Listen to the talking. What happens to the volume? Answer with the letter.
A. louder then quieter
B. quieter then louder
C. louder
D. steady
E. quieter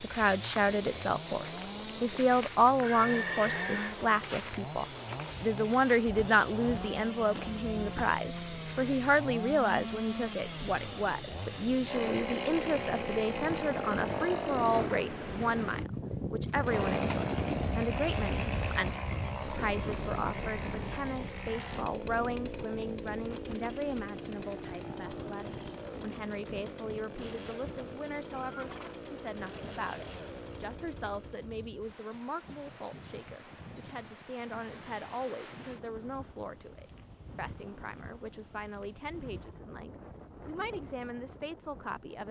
E.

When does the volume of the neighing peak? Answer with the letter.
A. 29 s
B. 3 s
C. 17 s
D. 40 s
B.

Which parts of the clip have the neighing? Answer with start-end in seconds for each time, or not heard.
2.8-4.0, 28.4-28.9.